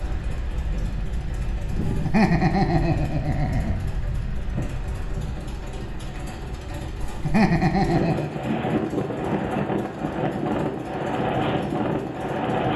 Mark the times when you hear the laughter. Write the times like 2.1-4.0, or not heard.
1.8-3.8, 7.0-8.4.